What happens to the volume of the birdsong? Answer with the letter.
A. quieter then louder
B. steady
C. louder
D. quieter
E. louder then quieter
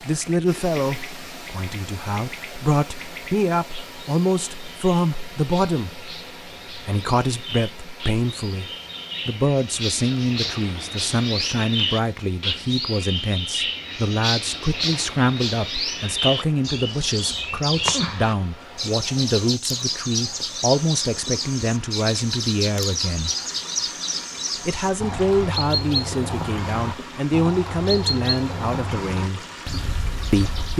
C.